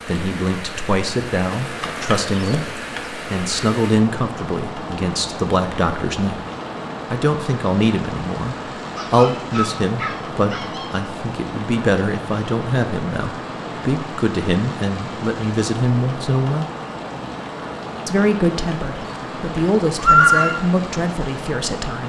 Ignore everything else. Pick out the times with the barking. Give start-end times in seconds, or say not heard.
8.9-10.9.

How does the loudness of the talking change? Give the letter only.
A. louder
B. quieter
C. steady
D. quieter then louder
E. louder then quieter
C.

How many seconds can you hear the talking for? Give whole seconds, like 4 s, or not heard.
20 s.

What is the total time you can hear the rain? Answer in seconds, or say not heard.
22 s.